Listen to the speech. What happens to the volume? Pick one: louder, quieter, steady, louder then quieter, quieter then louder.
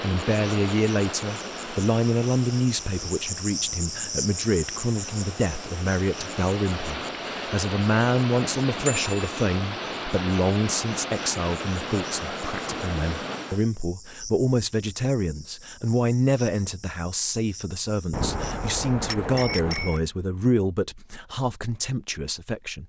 steady.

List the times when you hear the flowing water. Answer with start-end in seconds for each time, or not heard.
0.0-13.7.